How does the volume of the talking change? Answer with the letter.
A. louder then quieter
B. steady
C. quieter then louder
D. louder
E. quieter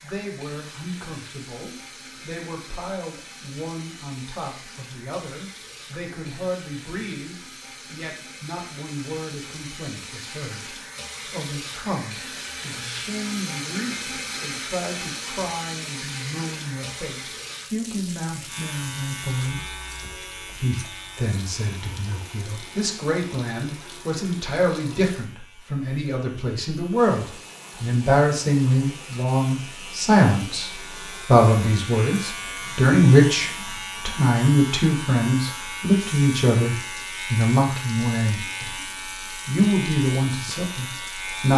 D.